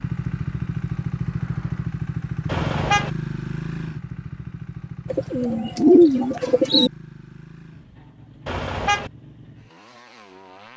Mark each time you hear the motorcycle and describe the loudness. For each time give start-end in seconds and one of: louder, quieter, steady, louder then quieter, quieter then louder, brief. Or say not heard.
0.0-10.7 quieter.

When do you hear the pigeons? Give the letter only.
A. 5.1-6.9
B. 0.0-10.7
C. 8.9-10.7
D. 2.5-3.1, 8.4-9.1
A.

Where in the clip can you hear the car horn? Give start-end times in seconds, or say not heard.
2.5-3.1, 8.4-9.1.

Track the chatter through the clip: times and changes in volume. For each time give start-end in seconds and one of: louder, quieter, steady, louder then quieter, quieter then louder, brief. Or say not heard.
not heard.